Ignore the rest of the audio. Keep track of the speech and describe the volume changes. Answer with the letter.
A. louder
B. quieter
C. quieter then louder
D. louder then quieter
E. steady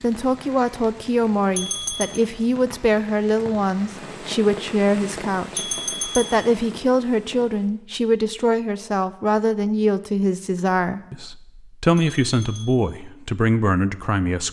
E.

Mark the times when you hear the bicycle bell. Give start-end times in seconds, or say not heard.
1.6-2.2, 5.5-6.5, 11.9-12.8.